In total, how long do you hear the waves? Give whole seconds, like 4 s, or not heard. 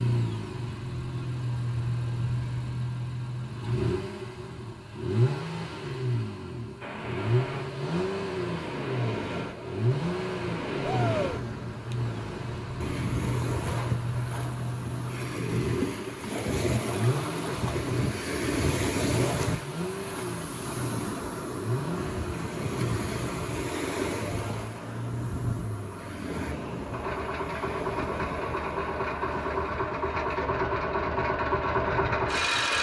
26 s.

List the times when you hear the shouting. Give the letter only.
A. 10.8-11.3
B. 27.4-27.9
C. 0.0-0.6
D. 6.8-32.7
A.